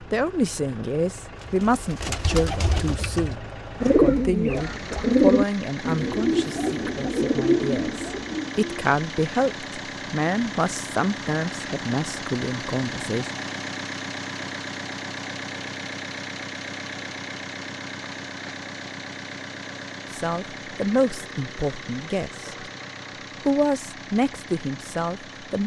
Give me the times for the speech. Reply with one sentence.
The speech can be heard from 0.0 to 13.3 s, from 20.1 to 22.7 s and from 23.4 to 25.6 s.